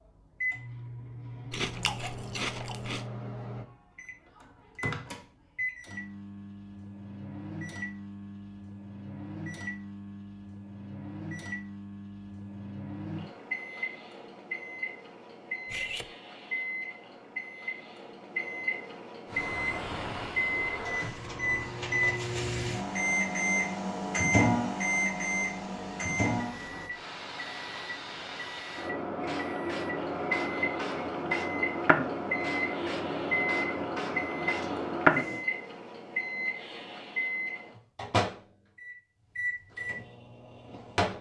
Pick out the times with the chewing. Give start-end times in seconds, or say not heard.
1.5-3.0.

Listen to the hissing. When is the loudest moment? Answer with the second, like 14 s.
35 s.